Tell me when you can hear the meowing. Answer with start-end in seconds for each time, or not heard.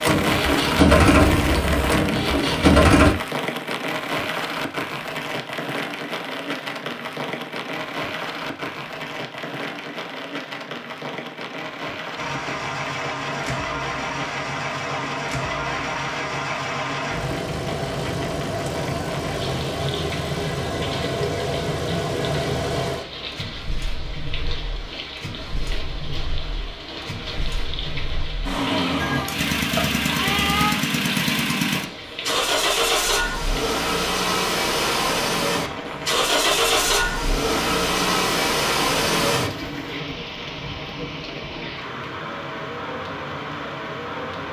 28.9-30.8.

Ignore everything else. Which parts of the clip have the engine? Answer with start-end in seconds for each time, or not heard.
0.0-3.1, 12.2-39.5.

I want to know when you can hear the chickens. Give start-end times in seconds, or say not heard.
not heard.